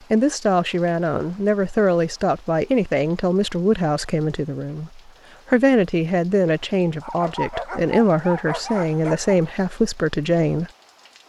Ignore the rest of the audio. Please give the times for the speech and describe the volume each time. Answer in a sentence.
You can hear the speech from 0.1 to 10.7 s, at a steady volume.